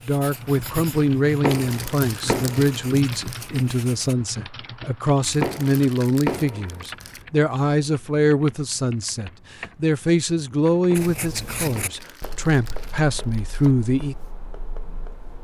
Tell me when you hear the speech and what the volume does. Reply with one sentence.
You can hear the speech from 0.1 to 14.2 s, at a steady volume.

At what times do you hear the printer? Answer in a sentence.
The printer can't be heard in this clip.